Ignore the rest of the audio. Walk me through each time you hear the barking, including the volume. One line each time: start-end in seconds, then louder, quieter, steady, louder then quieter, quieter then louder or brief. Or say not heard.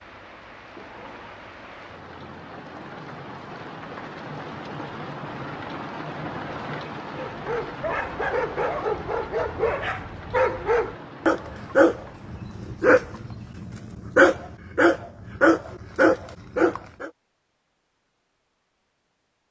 7.1-17.1 louder.